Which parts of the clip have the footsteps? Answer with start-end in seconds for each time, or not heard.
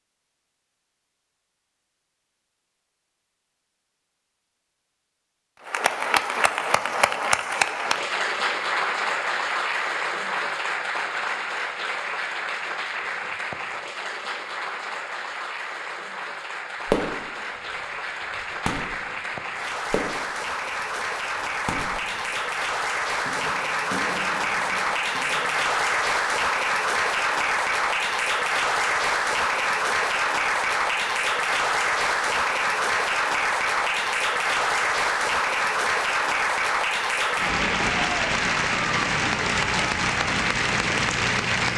not heard.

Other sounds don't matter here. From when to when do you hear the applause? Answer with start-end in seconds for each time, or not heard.
5.6-41.7.